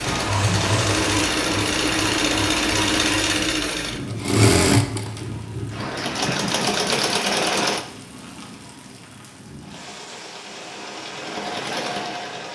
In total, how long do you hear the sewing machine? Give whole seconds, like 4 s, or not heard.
11 s.